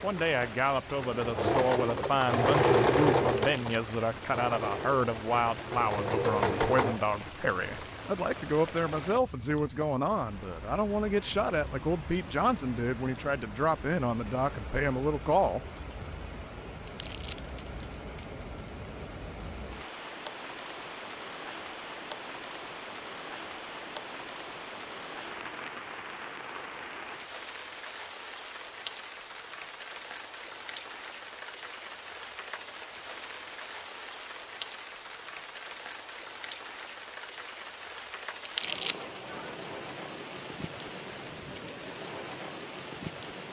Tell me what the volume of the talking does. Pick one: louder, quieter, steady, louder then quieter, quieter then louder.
steady.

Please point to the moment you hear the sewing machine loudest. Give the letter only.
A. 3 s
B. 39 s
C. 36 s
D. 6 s
A.